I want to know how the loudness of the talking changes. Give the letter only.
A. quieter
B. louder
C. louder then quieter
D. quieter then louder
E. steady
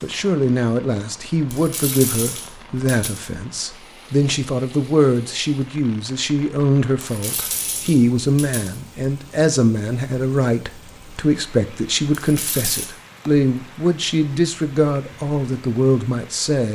E.